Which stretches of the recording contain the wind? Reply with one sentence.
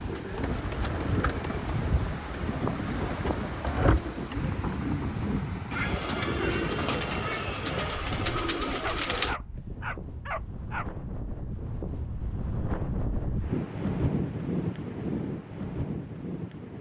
The wind can be heard from 0.0 to 16.7 s.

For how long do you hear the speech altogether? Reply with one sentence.
The speech can't be heard in this clip.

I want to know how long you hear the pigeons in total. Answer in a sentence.
The pigeons can be heard for 9 seconds in total.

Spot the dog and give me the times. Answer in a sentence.
The dog can be heard from 8.8 to 10.9 s.